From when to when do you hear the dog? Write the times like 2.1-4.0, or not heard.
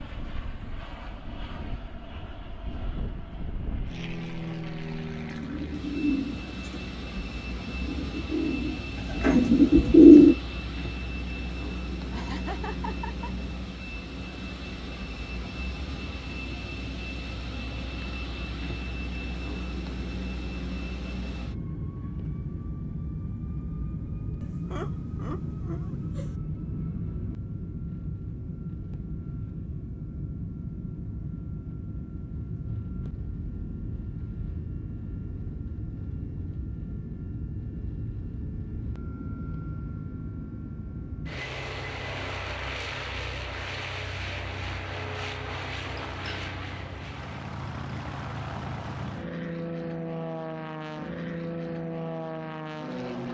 not heard.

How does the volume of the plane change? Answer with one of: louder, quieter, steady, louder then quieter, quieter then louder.
steady.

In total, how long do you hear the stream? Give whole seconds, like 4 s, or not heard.
not heard.